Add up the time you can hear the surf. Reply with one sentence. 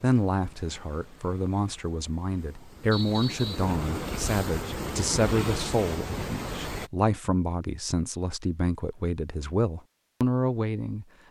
The surf can be heard for 7 seconds in total.